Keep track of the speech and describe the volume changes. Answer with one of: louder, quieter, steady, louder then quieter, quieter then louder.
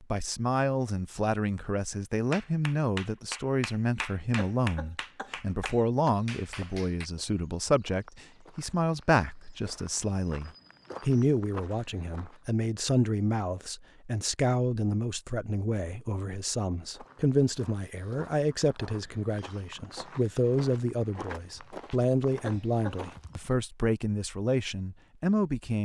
steady.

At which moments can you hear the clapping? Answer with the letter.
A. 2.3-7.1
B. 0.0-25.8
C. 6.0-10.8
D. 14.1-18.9
A.